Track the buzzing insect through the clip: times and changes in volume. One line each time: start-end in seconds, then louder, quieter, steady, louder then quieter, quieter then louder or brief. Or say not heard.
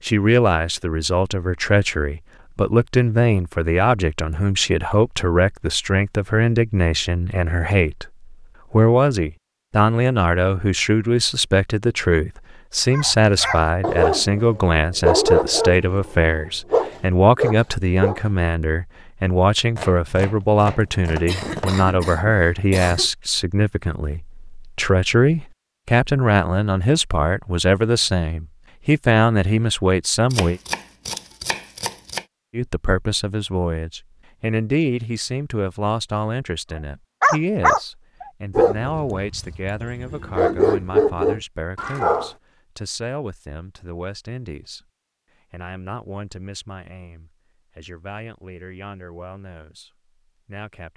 not heard.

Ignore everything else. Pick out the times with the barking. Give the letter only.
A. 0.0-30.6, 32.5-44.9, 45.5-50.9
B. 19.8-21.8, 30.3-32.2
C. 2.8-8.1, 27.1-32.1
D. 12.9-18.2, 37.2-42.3
D.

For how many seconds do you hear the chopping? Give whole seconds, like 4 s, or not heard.
4 s.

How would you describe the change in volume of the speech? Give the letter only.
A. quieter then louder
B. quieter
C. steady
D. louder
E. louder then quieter
B.